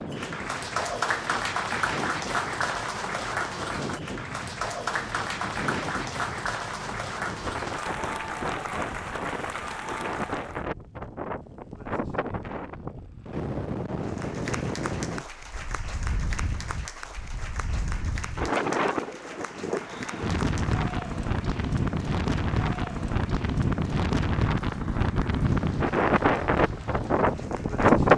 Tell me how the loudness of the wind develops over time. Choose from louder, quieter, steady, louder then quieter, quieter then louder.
louder.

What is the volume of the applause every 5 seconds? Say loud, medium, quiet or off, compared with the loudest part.
loud, loud, medium, medium, quiet, quiet.